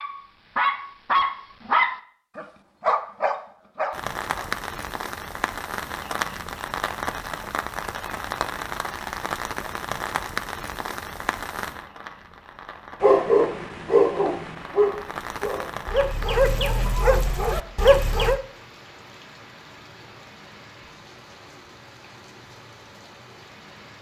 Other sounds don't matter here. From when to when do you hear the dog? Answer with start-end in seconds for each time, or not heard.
0.0-4.5, 13.0-18.4.